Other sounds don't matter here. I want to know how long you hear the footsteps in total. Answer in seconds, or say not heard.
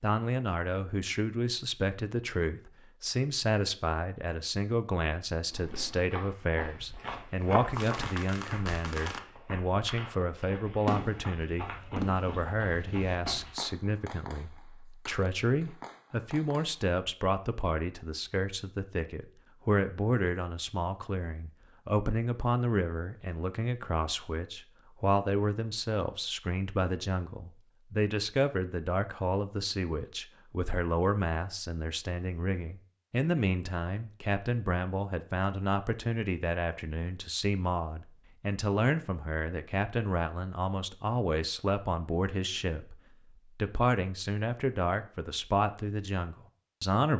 8 s.